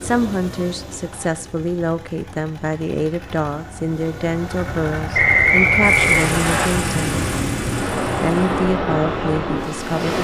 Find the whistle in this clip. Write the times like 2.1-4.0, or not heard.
5.1-6.7.